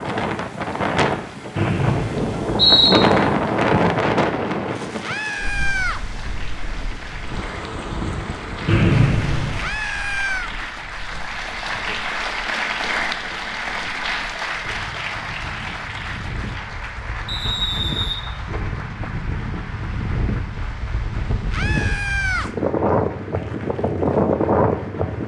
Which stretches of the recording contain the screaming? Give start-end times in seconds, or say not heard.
5.0-6.0, 9.6-10.5, 21.5-22.5.